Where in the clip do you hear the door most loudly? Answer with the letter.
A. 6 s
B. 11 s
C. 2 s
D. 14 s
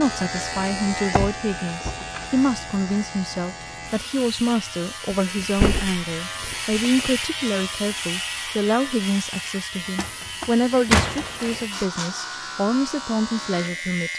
B.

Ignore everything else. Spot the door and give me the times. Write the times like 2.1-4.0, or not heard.
1.1-2.0, 5.1-7.1, 9.9-11.7.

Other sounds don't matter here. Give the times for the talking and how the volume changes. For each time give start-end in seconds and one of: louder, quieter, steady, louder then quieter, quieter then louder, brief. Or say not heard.
0.0-14.1 steady.